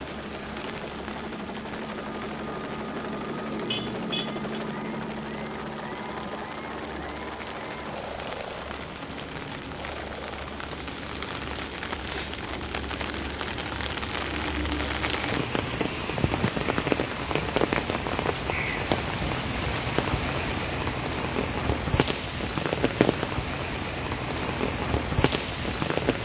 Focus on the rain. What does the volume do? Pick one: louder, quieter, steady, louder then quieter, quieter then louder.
louder.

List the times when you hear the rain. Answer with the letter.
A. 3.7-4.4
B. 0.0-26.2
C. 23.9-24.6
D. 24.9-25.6
B.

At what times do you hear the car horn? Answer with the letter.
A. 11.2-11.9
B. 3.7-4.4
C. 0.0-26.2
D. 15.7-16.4
B.